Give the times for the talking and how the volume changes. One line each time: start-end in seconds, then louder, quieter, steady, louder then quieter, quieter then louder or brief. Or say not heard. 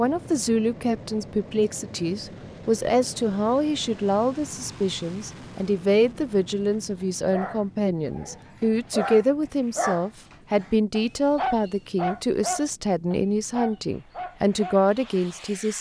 0.0-15.7 steady.